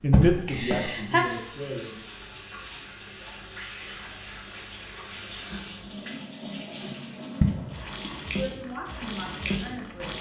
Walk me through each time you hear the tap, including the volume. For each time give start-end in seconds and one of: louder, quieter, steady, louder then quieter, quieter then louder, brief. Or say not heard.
0.0-10.1 louder.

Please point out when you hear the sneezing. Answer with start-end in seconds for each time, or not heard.
0.1-1.2, 7.4-8.1.